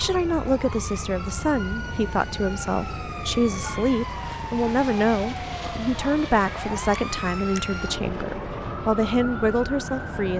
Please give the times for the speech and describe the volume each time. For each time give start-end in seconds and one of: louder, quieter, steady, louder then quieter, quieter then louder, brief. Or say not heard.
0.0-10.3 steady.